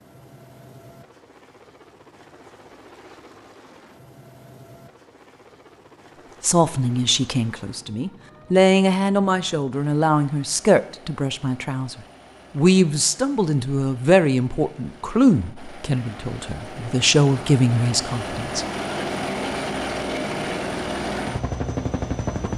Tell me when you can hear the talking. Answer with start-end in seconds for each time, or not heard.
6.4-11.9, 12.6-18.6.